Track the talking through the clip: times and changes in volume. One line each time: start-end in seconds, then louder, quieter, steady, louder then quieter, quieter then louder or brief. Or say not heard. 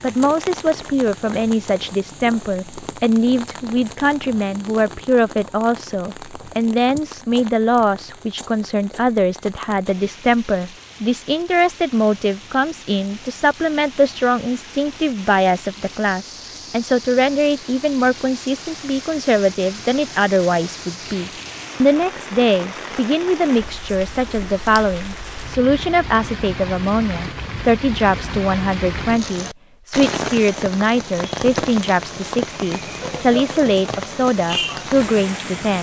0.0-35.7 steady.